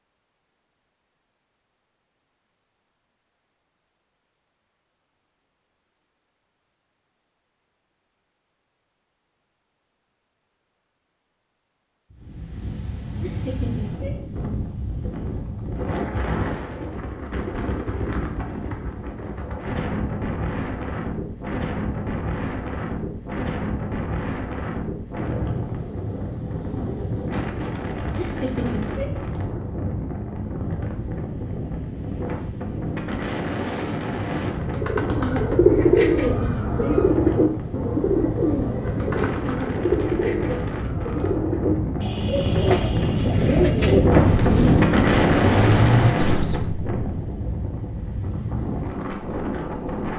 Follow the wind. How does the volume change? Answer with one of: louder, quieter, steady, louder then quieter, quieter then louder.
louder.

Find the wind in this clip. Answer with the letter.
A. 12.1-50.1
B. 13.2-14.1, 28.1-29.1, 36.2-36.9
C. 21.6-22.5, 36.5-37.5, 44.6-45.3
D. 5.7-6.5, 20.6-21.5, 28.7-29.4
A.